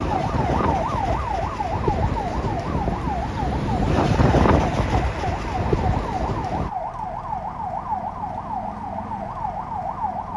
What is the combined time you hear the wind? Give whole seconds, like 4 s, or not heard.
7 s.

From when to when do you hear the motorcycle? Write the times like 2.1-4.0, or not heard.
not heard.